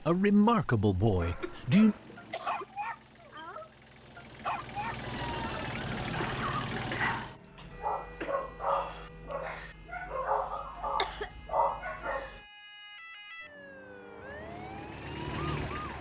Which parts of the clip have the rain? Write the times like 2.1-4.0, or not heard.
not heard.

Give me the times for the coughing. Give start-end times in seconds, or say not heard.
1.4-2.6, 6.0-8.4, 10.8-11.3.